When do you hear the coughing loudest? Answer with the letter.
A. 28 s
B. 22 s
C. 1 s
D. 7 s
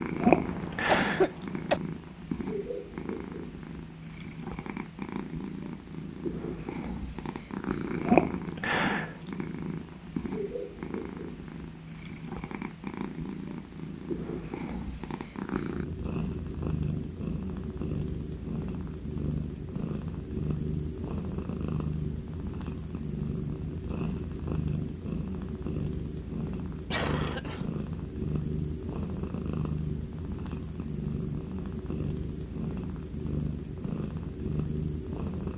C.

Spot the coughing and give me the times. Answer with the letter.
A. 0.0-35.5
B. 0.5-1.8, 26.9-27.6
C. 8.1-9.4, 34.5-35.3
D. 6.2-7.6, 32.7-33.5
B.